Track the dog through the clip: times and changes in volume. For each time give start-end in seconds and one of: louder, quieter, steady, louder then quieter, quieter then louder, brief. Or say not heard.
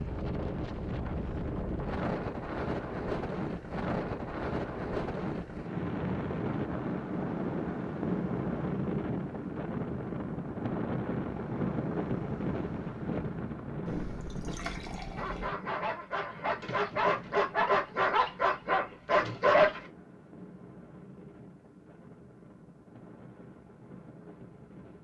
15.2-19.9 louder.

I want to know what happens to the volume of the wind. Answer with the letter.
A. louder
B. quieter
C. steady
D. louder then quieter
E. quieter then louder
B.